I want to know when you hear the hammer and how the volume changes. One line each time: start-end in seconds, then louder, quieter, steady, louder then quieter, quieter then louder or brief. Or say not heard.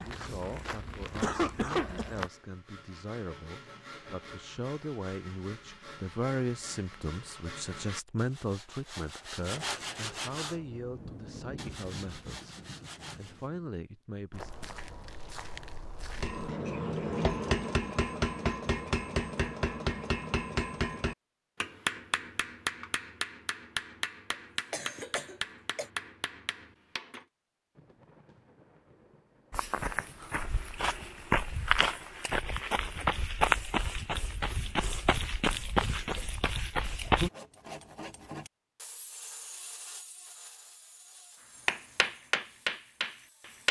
16.2-27.2 quieter
41.6-43.6 brief.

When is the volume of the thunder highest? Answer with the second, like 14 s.
12 s.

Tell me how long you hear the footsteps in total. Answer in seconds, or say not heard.
12 s.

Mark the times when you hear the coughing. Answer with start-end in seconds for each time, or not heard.
1.1-2.0, 24.6-25.9, 35.4-36.3.